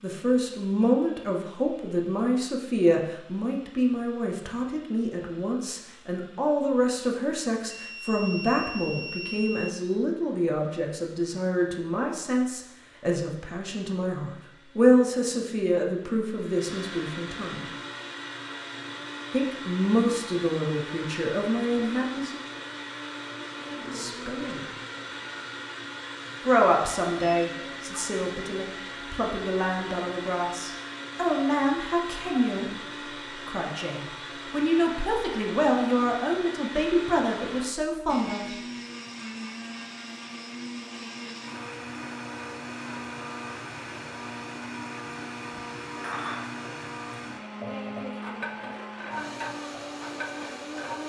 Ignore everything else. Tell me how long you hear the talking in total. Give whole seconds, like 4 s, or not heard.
33 s.